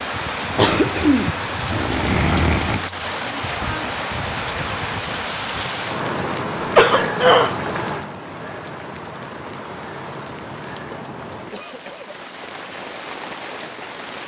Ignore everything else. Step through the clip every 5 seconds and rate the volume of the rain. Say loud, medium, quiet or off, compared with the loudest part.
loud, loud, medium.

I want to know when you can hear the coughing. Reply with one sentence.
You can hear the coughing from 0.6 to 2.9 s, from 6.6 to 7.5 s and from 10.9 to 12.2 s.